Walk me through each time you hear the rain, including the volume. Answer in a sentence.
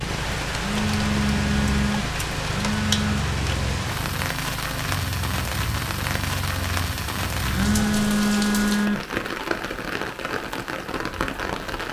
You can hear the rain from 0.0 to 11.8 s, at a steady volume.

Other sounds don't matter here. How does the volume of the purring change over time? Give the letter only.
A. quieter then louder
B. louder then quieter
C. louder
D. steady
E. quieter
D.